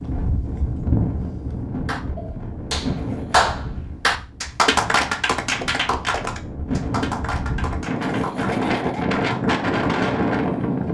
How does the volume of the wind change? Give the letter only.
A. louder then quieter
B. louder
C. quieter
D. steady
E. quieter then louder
E.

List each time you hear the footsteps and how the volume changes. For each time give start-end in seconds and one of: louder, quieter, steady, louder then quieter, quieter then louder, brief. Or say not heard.
not heard.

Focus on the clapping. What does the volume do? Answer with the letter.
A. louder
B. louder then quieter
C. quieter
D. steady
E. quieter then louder
C.